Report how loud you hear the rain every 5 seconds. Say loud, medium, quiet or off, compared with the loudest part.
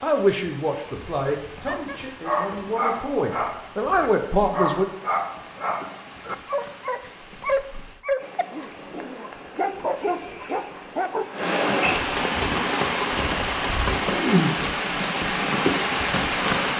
quiet, quiet, loud, loud.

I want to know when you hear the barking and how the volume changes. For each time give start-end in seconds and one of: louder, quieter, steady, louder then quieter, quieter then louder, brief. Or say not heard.
1.6-11.5 steady.